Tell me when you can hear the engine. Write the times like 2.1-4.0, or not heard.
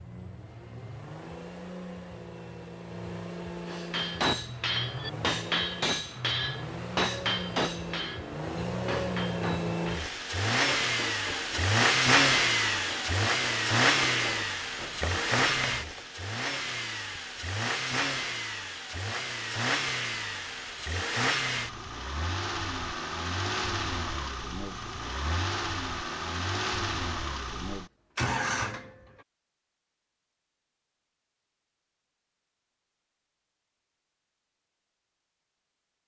0.0-29.2.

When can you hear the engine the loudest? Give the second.
12 s.